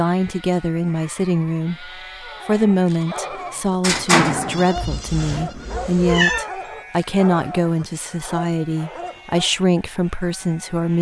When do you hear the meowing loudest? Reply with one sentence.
The loudest moment of the meowing is at 6 seconds.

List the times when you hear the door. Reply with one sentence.
The door can be heard from 3.4 to 4.7 s.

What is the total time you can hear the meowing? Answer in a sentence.
You can hear the meowing for 2 seconds altogether.